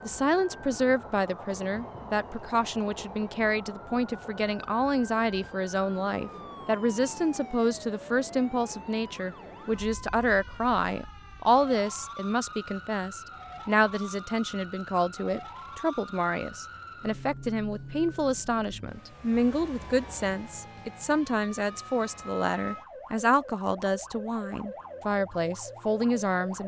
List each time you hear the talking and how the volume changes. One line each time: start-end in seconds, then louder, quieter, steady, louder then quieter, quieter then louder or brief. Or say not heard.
0.0-26.6 steady.